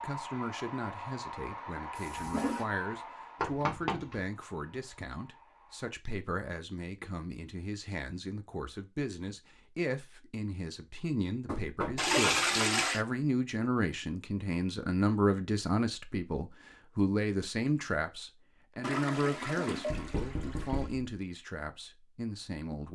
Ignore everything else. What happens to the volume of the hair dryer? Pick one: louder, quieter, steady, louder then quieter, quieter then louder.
quieter.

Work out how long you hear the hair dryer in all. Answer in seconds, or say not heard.
6 s.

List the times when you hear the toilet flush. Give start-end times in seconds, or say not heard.
1.9-2.7, 11.9-13.1, 18.8-20.9.